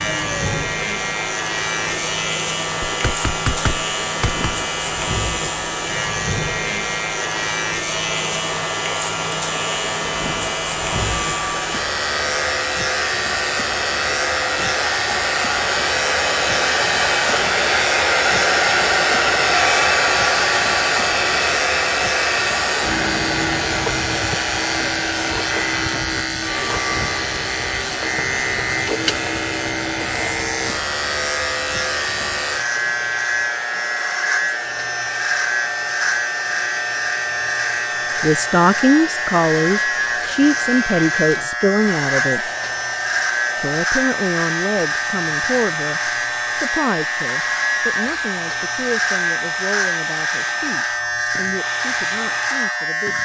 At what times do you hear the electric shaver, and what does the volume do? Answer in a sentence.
You can hear the electric shaver from 0.0 to 53.1 s, at a steady volume.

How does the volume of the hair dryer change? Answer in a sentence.
The volume of the hair dryer goes up, then down.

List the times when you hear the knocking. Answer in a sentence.
You can hear the knocking from 2.8 to 4.5 s.